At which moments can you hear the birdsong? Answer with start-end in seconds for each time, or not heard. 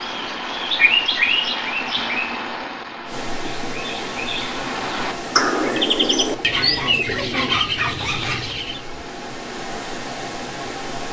0.0-8.8.